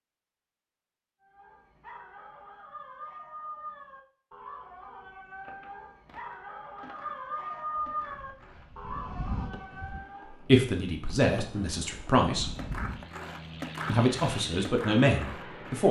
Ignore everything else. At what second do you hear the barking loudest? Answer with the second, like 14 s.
8 s.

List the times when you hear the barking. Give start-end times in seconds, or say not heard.
1.2-10.4.